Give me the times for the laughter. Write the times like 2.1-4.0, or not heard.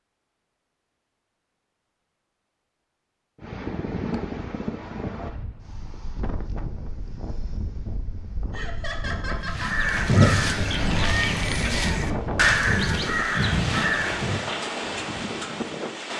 8.5-9.8.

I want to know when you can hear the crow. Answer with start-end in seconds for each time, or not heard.
9.4-14.4.